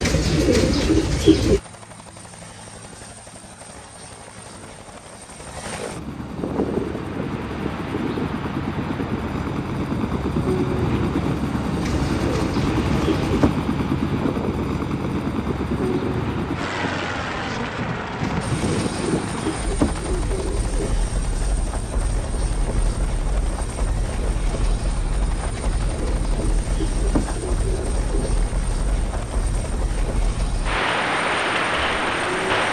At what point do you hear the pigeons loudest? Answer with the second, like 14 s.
1 s.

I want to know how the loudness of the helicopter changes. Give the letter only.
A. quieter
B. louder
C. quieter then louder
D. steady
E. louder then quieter
E.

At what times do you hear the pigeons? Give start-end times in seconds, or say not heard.
0.0-1.6, 11.8-13.6, 18.2-21.0, 25.5-28.4.